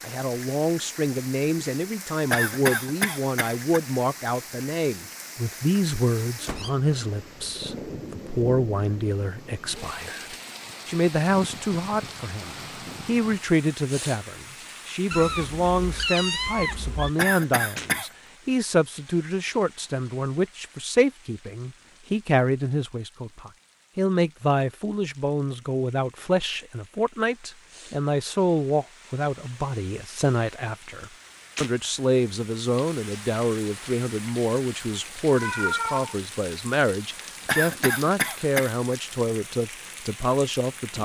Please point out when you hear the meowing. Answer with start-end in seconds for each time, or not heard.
6.5-7.0, 15.1-17.1, 35.3-36.1.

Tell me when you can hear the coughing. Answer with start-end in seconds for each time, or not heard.
2.3-3.8, 17.1-18.1, 37.5-39.0.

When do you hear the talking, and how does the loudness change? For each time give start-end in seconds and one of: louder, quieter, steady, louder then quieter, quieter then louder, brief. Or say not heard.
0.0-41.0 steady.